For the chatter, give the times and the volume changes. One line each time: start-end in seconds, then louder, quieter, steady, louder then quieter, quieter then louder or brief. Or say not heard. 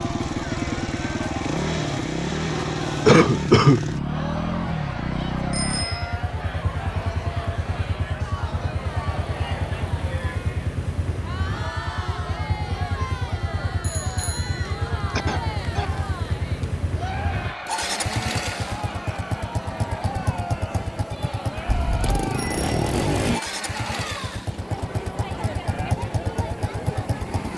0.0-27.5 steady.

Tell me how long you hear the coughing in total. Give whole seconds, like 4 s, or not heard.
2 s.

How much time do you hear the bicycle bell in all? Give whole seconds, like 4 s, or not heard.
3 s.